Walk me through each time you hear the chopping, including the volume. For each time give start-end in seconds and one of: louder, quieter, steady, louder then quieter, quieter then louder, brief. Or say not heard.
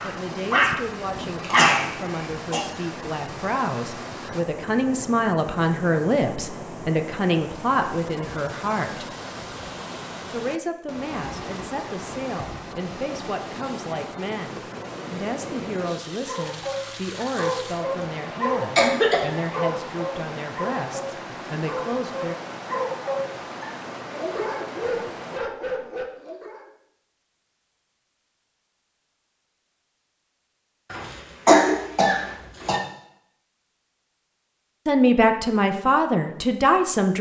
not heard.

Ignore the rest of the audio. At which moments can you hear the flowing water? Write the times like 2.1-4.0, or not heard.
0.0-25.4.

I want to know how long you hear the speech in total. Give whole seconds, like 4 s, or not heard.
23 s.